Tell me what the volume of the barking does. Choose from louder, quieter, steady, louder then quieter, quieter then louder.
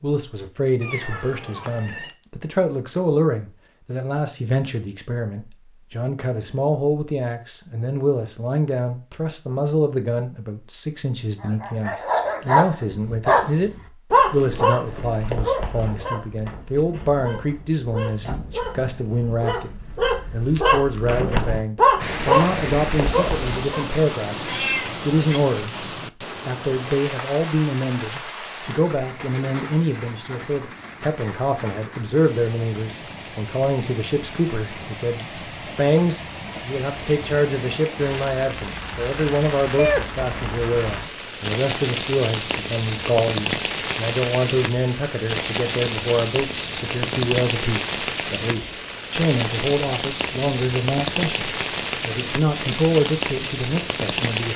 quieter then louder.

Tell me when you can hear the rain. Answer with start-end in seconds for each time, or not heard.
21.9-54.5.